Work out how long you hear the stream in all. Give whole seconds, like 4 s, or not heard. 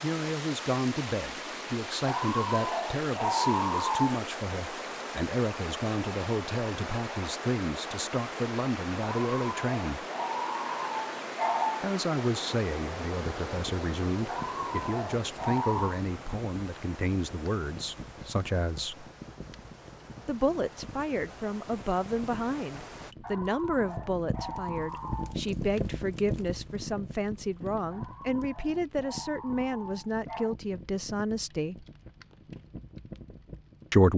23 s.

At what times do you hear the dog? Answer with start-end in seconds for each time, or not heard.
2.0-4.2, 9.0-11.8, 14.2-16.0, 23.2-25.4, 27.9-30.6.